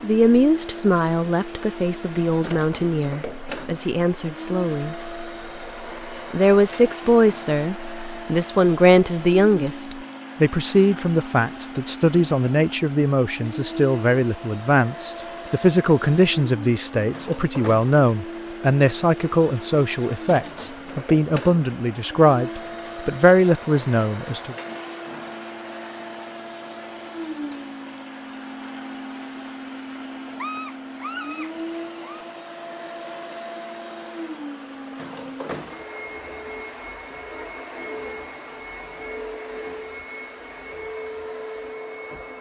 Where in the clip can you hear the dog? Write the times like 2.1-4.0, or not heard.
30.4-32.2.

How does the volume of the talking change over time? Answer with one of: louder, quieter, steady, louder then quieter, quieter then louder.
steady.